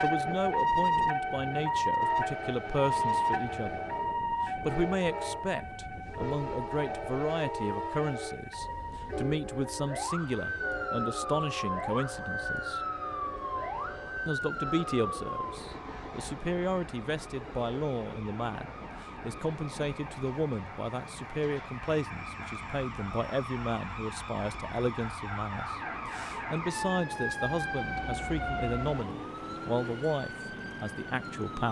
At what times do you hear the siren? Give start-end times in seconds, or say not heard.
0.0-31.6.